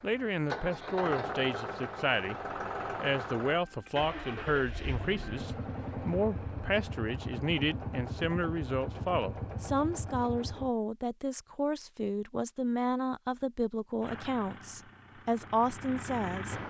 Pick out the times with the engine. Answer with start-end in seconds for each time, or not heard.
0.0-10.7, 14.0-16.6.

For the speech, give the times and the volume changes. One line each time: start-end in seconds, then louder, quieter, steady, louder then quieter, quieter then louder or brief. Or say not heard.
0.0-2.4 brief
3.0-16.6 steady.